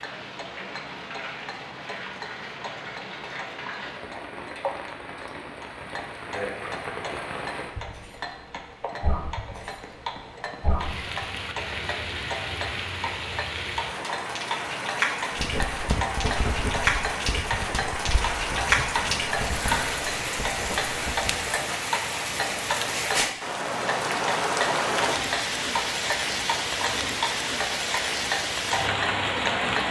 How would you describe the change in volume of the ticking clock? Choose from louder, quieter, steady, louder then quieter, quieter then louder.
louder.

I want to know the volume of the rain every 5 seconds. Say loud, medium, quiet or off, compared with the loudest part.
medium, medium, medium, loud, loud, loud.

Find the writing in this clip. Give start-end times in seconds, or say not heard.
15.3-21.3.